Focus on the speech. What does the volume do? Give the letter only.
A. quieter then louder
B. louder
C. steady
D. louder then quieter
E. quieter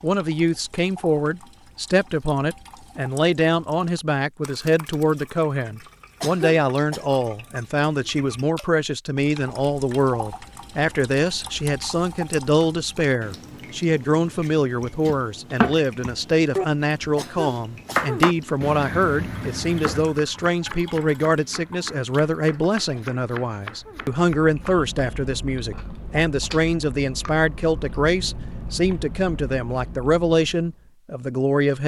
C.